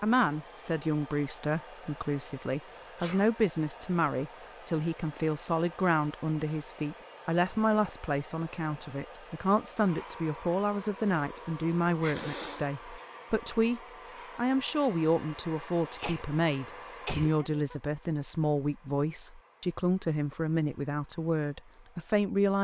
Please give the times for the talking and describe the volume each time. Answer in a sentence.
You can hear the talking from 0.0 to 22.5 s, at a steady volume.